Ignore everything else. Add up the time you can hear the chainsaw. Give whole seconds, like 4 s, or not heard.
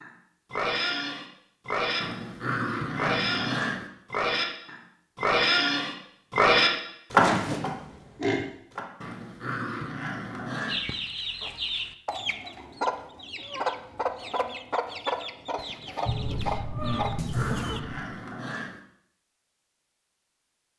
not heard.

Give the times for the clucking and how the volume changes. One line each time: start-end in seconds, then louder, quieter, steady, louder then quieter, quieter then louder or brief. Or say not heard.
10.7-17.8 steady.